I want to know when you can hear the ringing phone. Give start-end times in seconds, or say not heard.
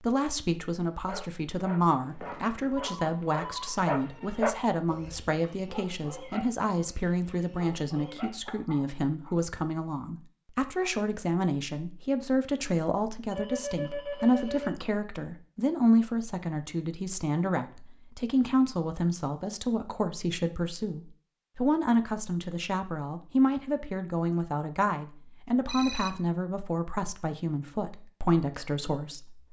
2.0-3.9, 13.3-14.7, 25.6-26.1.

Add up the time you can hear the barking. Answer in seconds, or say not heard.
8 s.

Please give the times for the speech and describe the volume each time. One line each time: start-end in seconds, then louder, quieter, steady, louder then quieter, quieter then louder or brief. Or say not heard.
0.0-29.4 steady.